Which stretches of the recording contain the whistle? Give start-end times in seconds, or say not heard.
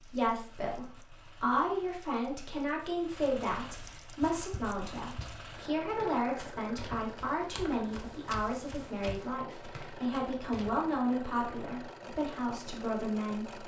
not heard.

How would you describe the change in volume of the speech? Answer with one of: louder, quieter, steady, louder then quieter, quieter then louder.
steady.